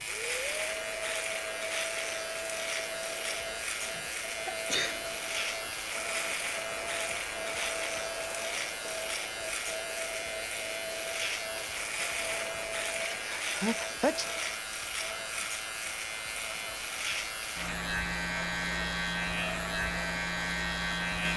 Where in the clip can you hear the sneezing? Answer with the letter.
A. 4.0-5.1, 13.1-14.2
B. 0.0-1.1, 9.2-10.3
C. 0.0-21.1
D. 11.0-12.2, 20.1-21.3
A.